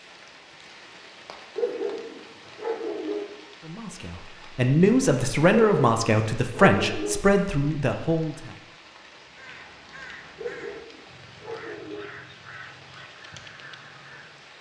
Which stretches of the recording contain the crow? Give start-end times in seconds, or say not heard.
9.1-14.5.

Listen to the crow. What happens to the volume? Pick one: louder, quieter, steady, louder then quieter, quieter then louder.
steady.